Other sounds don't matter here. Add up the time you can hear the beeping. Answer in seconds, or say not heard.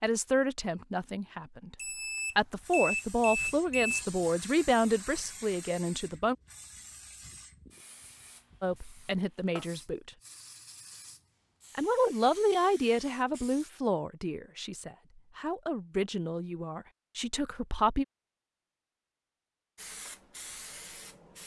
2 s.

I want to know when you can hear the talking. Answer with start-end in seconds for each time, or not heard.
0.0-1.8, 2.4-6.3, 8.6-10.1, 11.8-18.1.